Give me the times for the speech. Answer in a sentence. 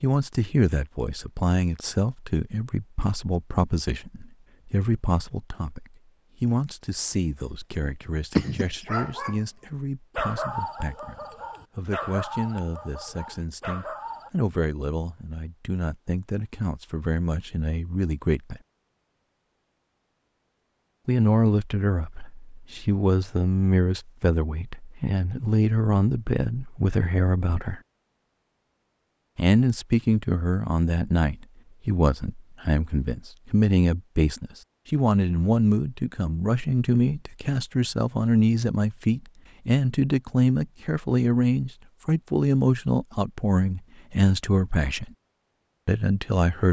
You can hear the speech from 0.0 to 18.6 s, from 21.1 to 27.8 s, from 29.4 to 45.1 s and from 45.9 to 46.6 s.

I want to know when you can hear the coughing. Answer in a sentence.
The coughing can't be heard in this clip.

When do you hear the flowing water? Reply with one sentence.
You can't hear the flowing water here.